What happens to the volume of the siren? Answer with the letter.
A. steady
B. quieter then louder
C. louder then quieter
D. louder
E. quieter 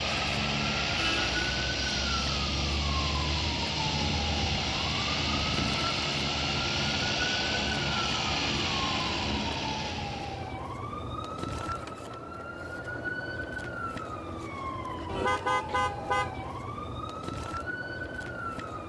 A.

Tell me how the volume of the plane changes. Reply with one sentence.
The volume of the plane stays about the same.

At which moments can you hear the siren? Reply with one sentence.
The siren can be heard from 0.0 to 18.8 s.